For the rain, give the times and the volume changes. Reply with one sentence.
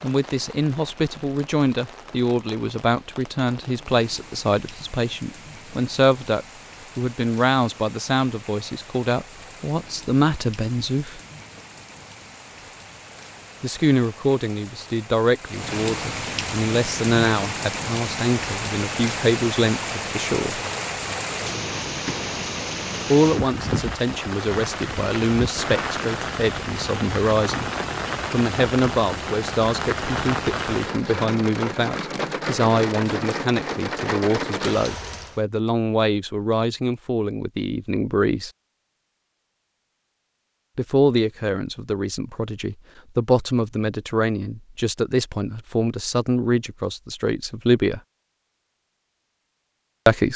The rain can be heard from 0.0 to 35.4 s, getting louder.